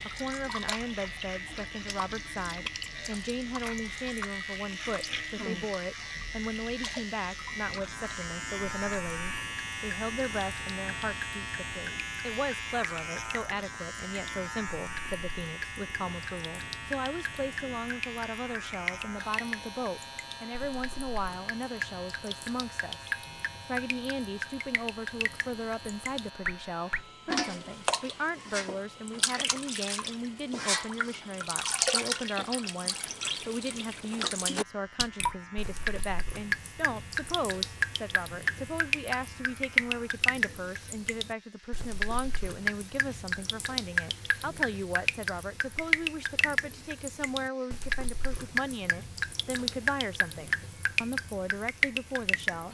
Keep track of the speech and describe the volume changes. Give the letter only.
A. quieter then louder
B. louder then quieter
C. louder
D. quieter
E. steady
E.